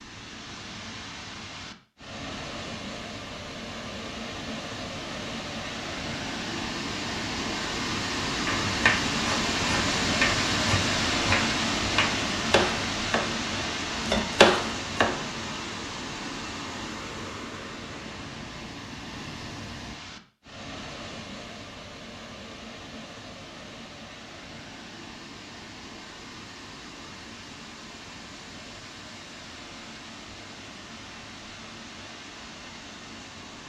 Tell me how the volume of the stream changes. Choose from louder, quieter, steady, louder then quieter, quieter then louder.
louder then quieter.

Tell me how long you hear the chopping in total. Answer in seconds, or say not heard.
7 s.